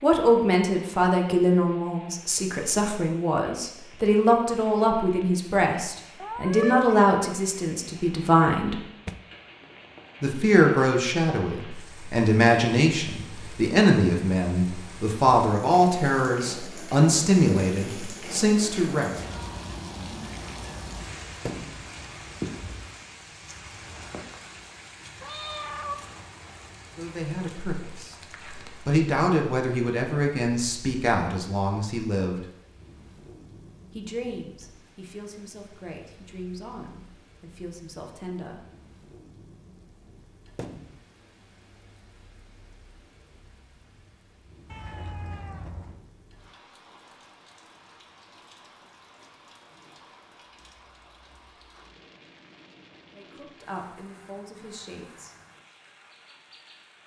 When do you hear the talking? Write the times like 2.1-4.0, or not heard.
0.0-8.8, 10.2-19.1, 26.9-32.5, 34.0-38.6, 53.1-55.4.